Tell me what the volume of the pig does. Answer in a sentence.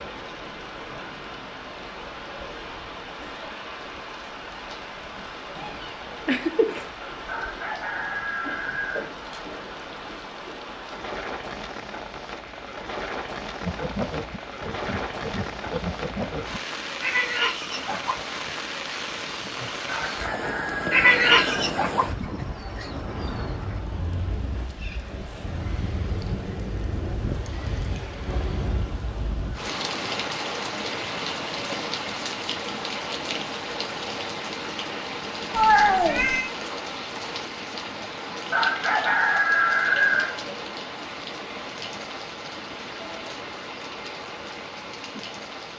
The volume of the pig goes up, then down.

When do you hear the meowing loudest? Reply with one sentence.
The volume of the meowing peaks at 36 seconds.